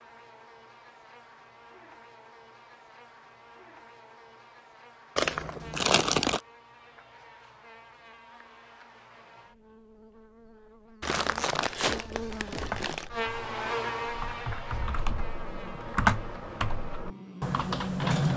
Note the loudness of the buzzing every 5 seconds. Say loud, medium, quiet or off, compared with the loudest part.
quiet, quiet, loud, medium.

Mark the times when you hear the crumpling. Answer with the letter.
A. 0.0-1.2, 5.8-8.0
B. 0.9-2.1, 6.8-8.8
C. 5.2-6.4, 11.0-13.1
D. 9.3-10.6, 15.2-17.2
C.